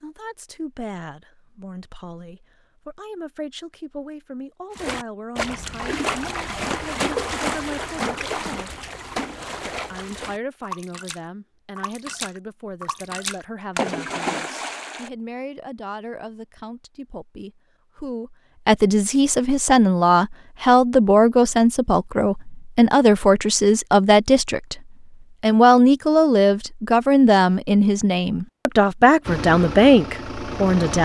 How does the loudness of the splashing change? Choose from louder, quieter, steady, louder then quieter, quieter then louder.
quieter then louder.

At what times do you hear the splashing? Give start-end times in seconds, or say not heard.
4.8-15.1.